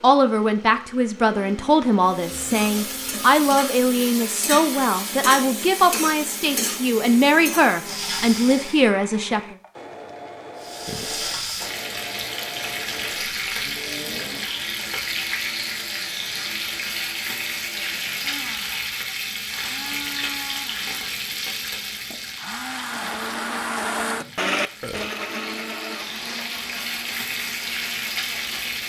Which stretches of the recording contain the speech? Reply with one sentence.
The speech can be heard from 0.0 to 9.6 s.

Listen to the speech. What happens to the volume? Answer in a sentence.
The loudness of the speech stays about the same.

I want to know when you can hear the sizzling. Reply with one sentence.
You can hear the sizzling from 2.0 to 8.8 s and from 10.6 to 28.8 s.